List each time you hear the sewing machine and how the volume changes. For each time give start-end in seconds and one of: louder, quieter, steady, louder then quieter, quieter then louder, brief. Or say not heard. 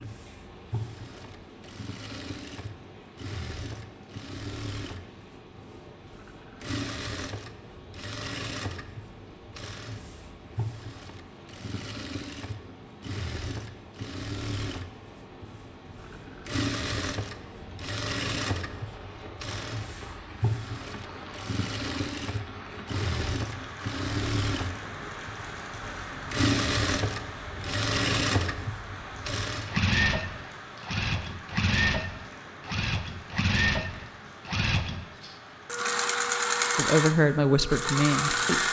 0.0-38.6 louder.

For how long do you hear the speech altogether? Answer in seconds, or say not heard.
2 s.